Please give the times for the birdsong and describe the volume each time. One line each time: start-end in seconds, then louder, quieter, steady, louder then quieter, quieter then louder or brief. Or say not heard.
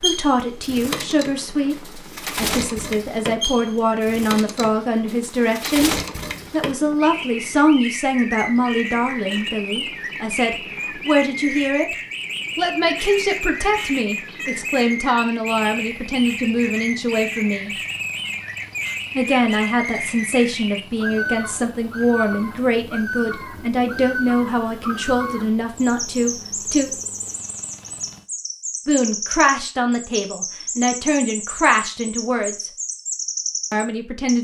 0.0-34.4 steady.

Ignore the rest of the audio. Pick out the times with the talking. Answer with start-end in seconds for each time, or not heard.
0.0-11.9, 12.6-17.7, 19.1-26.9, 28.9-32.6, 33.7-34.4.